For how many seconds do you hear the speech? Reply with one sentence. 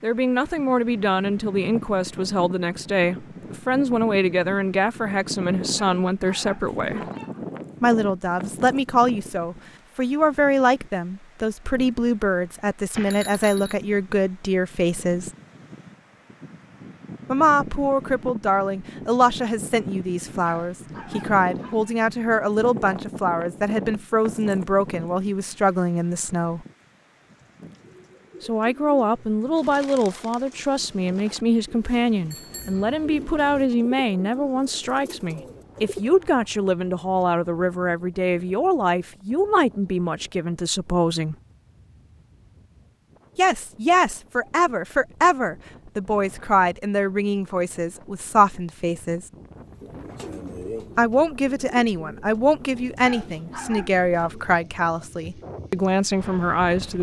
You can hear the speech for 49 seconds altogether.